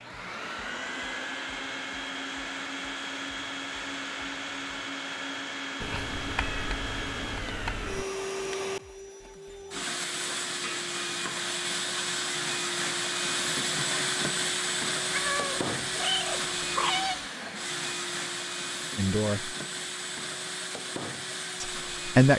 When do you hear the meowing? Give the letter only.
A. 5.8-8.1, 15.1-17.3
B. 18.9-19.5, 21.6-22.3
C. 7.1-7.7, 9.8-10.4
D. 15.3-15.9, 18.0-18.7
A.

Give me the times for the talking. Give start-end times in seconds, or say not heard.
18.9-19.5, 21.6-22.3.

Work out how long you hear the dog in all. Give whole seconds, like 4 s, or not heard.
not heard.